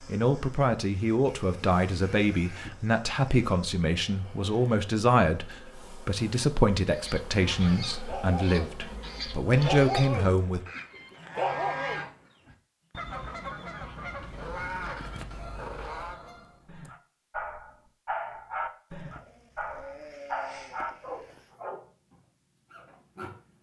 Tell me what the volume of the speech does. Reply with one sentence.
The volume of the speech stays about the same.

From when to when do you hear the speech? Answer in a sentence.
You can hear the speech from 0.1 to 10.6 s.